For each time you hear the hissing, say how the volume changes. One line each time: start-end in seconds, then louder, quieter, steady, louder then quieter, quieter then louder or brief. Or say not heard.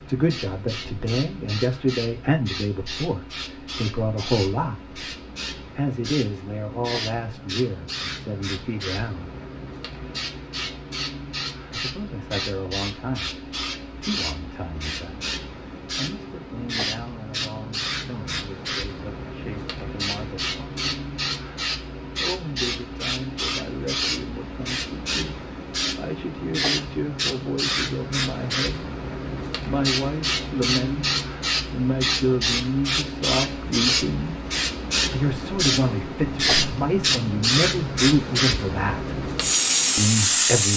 0.0-40.7 louder.